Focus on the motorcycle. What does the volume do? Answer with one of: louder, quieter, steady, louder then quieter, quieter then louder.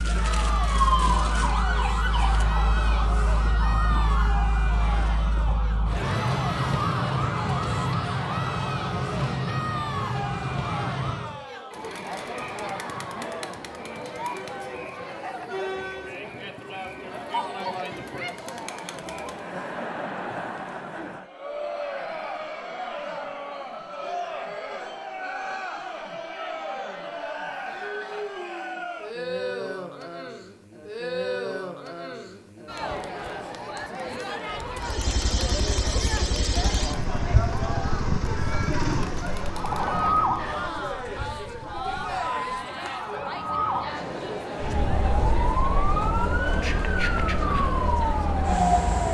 quieter.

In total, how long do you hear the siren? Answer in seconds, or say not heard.
21 s.